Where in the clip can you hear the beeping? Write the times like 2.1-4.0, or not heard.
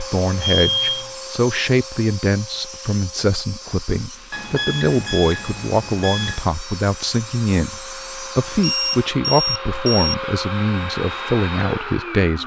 0.4-1.1, 4.3-6.5, 8.6-10.2.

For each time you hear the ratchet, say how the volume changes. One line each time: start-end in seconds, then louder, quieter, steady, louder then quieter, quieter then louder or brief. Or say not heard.
not heard.